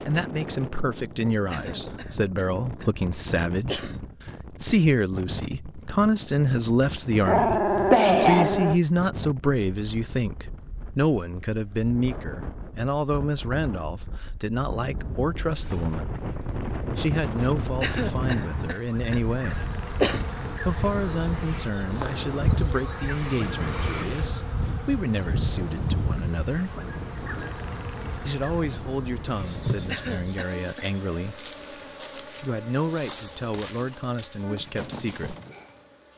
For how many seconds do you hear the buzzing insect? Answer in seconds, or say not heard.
19 s.